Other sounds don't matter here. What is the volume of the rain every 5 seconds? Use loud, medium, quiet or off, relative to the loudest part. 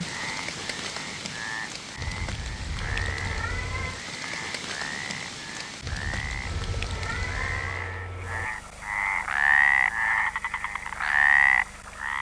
loud, loud, off.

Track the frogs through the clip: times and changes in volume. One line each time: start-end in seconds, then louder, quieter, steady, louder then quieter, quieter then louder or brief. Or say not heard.
0.0-12.1 louder.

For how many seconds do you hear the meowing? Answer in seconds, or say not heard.
3 s.